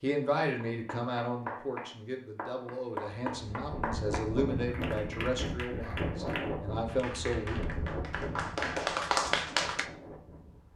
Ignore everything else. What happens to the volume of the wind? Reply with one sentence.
The volume of the wind goes down.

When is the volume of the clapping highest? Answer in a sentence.
The volume of the clapping peaks at 9 seconds.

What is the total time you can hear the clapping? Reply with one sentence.
You can hear the clapping for 9 seconds altogether.